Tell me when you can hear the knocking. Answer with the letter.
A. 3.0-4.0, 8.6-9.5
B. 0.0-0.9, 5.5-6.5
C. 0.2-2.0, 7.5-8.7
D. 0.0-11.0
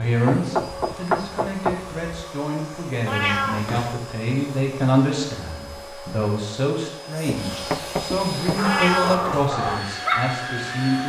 C.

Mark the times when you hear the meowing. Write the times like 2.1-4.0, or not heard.
3.0-4.0, 8.6-9.5.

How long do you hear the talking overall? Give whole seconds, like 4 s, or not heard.
11 s.